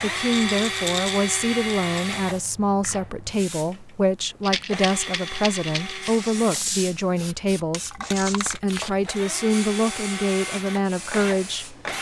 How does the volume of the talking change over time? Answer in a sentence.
The volume of the talking stays about the same.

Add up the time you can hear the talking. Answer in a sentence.
The talking can be heard for 12 seconds in total.